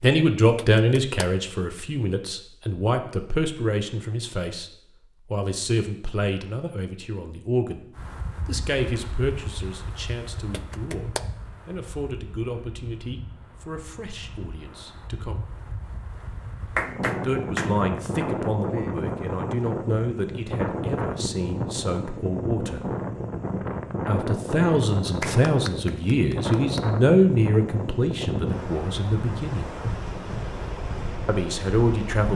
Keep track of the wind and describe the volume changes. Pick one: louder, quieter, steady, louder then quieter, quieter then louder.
louder.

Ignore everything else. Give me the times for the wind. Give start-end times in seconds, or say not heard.
8.0-32.3.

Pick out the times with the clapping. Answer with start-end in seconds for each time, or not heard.
0.6-1.2, 10.5-11.2, 16.8-17.8, 25.2-26.9.